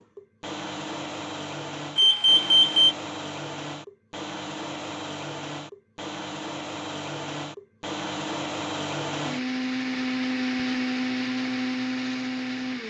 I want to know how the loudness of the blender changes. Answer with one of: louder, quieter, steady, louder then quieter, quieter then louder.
louder.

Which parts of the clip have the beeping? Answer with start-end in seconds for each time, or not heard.
1.9-3.0.